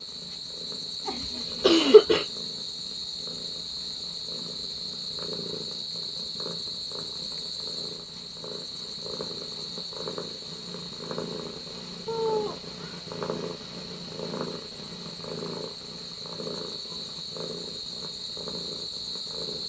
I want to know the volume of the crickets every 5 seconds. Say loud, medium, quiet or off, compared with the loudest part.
loud, loud, medium, loud.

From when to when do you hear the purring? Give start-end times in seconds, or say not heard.
0.0-19.6.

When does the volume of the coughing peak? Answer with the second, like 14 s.
2 s.